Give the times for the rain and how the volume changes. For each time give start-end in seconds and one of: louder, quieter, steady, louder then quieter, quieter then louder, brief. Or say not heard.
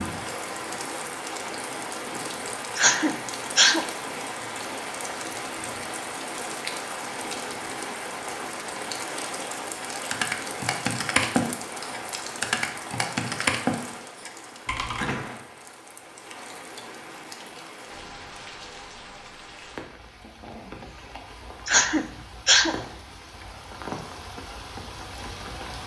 0.0-25.8 quieter.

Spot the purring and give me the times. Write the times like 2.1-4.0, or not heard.
not heard.